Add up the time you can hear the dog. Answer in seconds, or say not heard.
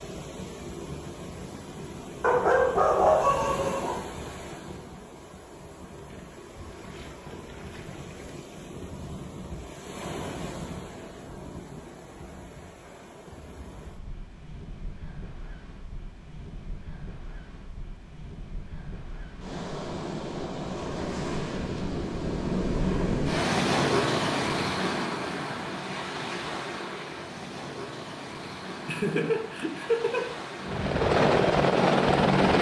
2 s.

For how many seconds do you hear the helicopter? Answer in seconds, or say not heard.
2 s.